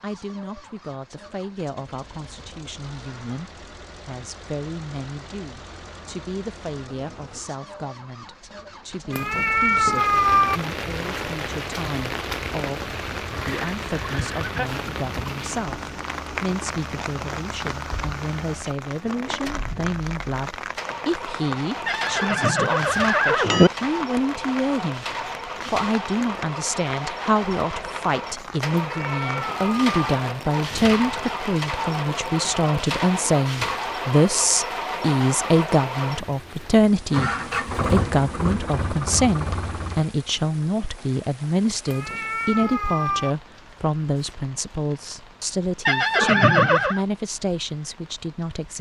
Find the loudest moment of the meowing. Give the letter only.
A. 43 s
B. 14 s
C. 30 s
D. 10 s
D.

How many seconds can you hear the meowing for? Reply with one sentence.
You can hear the meowing for 4 seconds altogether.